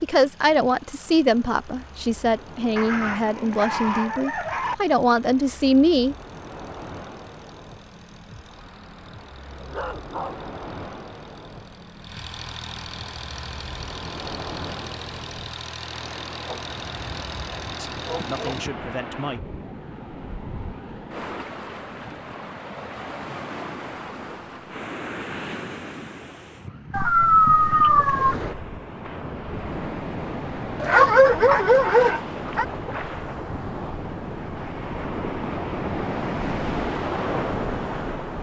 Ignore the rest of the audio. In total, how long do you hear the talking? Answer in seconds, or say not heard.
8 s.